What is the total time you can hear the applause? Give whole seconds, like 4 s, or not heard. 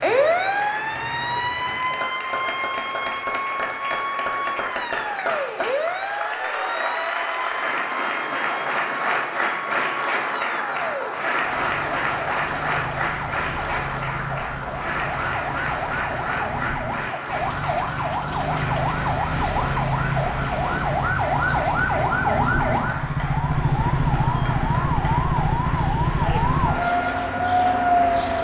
28 s.